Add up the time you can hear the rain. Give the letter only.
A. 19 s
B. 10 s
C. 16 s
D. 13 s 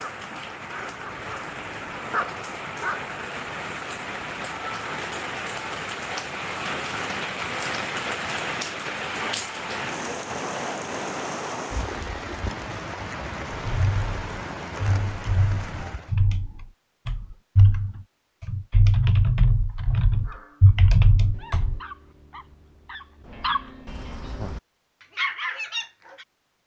C.